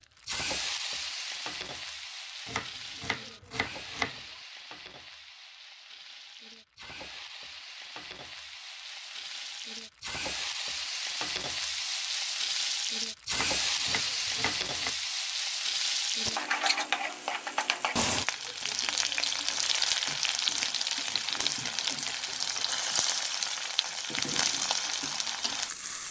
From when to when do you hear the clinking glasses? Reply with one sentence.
You can't hear the clinking glasses here.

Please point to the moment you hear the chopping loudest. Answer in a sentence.
The loudest moment of the chopping is at 4 seconds.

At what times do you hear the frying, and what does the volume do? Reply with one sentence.
The frying can be heard from 0.2 to 26.0 s, getting louder.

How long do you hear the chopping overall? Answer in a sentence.
The chopping can be heard for 6 seconds in total.